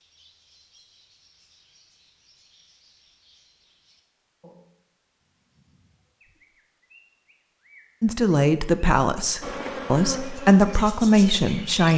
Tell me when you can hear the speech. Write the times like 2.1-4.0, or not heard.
8.0-11.9.